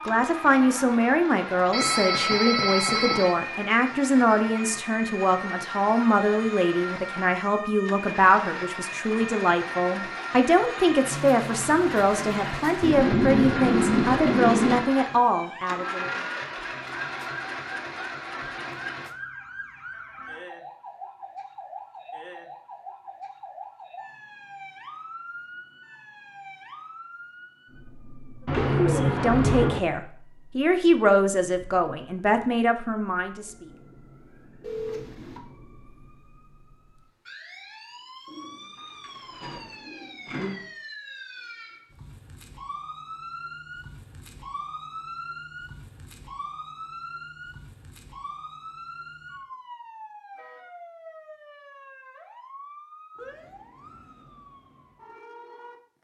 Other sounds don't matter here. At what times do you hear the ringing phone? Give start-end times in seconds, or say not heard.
1.7-3.4, 34.6-35.4.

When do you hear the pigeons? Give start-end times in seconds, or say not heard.
12.8-14.8, 28.4-29.8, 38.2-40.6.